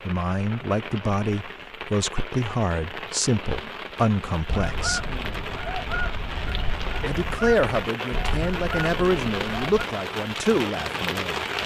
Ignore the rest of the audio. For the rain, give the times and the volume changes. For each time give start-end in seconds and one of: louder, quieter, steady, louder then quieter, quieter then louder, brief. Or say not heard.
0.0-11.6 louder.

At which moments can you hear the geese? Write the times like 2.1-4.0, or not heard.
4.5-9.8.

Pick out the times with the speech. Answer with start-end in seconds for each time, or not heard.
0.1-5.0, 7.0-11.4.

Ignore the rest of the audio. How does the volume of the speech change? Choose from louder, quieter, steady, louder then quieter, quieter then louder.
steady.